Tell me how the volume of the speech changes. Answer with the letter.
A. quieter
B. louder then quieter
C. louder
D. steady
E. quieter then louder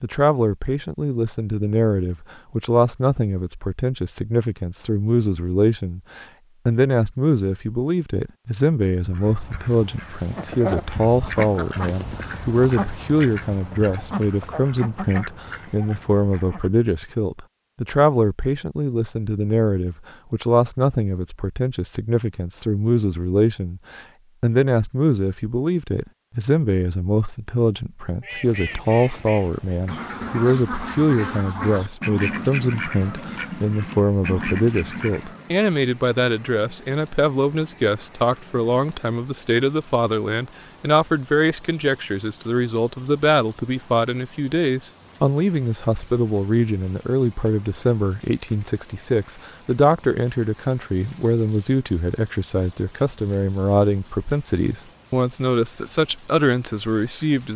D.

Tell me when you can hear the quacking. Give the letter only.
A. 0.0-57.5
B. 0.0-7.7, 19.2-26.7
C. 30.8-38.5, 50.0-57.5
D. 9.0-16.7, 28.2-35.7
D.